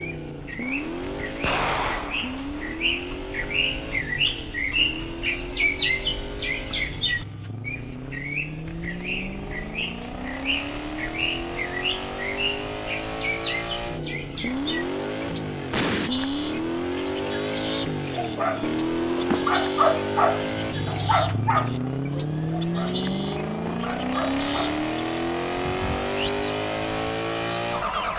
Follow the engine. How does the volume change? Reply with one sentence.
The loudness of the engine goes up.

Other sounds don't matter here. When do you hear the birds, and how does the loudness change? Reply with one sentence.
The birds can be heard from 0.0 to 28.1 s, getting quieter.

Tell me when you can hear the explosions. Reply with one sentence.
You can hear the explosions from 1.4 to 2.5 s and from 15.7 to 16.1 s.